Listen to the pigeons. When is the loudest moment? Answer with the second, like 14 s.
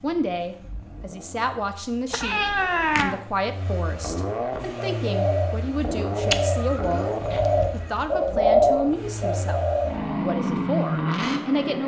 9 s.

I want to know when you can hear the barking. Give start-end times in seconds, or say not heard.
not heard.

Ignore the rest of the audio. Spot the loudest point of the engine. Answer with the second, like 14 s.
11 s.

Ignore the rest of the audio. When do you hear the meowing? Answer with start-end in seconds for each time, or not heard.
2.1-3.2, 6.3-8.1.